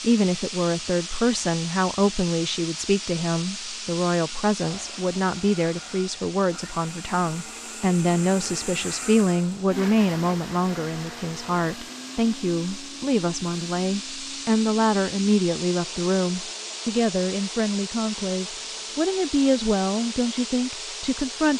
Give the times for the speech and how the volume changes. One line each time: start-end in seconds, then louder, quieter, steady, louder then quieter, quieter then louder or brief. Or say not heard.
0.0-21.5 steady.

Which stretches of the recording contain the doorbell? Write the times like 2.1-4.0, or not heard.
not heard.